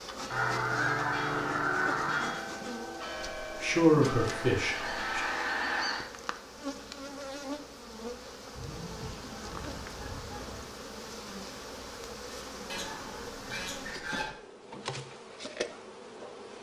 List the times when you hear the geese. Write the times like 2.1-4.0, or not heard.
0.2-2.5, 4.2-6.0, 8.6-10.7, 12.7-14.3.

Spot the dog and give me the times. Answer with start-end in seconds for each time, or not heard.
not heard.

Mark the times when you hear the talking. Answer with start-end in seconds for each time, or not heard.
3.5-5.2.